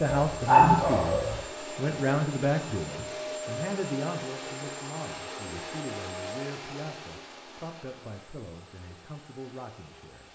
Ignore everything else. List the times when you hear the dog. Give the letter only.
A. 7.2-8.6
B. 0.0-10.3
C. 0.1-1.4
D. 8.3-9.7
C.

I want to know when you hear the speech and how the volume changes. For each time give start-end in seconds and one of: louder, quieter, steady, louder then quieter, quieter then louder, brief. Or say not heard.
0.0-10.3 quieter.